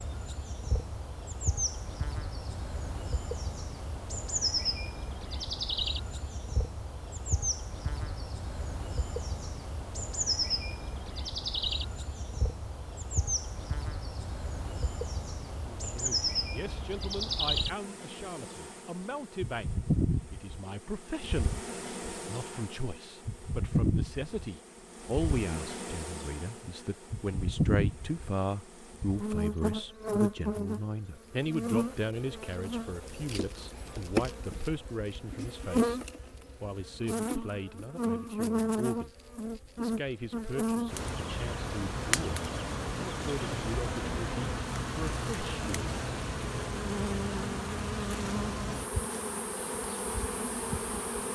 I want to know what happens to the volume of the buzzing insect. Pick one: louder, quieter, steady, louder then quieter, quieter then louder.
steady.